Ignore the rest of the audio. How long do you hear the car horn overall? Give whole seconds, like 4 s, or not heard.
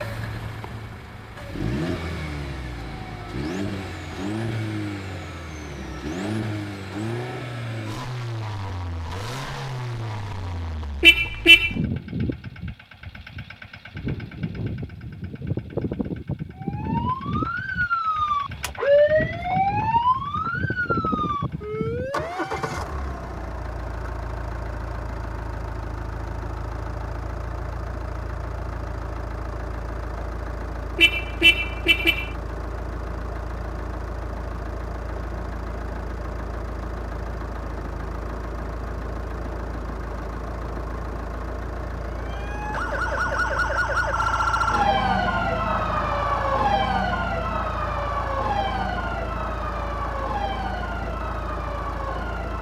2 s.